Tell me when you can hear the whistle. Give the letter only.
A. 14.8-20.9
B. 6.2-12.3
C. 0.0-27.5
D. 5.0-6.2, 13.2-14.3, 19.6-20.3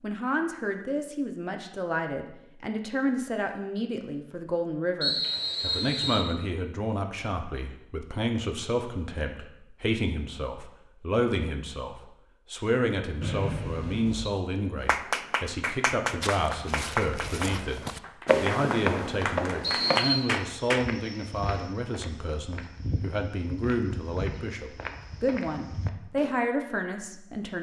D.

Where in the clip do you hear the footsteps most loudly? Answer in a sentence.
The volume of the footsteps peaks at 18 seconds.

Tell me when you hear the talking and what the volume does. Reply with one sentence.
You can hear the talking from 0.0 to 27.5 s, at a steady volume.